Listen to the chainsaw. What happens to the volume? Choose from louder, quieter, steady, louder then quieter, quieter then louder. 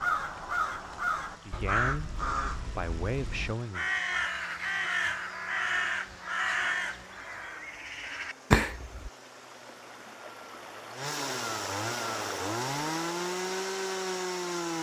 louder.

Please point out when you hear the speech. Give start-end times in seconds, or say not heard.
1.4-3.9.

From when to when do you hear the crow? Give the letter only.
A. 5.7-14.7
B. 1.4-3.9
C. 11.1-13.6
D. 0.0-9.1
D.